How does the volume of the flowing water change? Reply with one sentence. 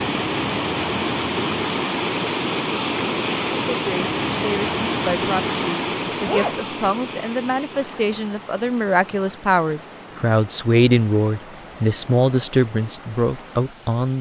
The loudness of the flowing water goes down.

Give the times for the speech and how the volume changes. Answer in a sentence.
You can hear the speech from 3.8 to 14.1 s, getting louder.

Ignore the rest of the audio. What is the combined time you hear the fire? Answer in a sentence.
The fire can't be heard in this clip.